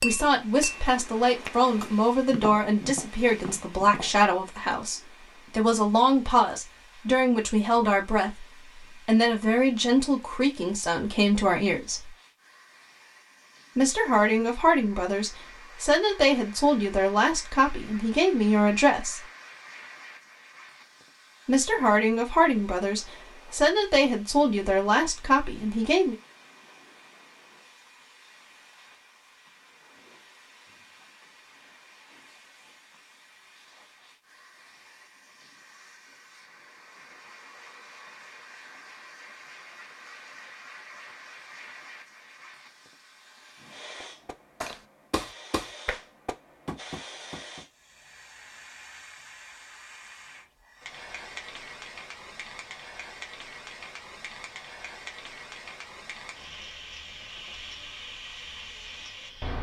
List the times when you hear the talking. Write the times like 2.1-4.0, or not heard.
0.0-12.2, 13.8-19.2, 21.4-26.1.